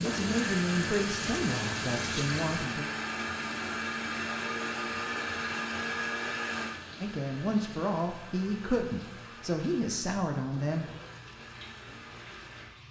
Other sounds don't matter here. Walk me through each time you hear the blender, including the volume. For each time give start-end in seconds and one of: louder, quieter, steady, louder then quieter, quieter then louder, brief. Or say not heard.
0.0-12.8 quieter.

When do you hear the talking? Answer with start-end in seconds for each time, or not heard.
0.0-2.9, 7.0-10.9.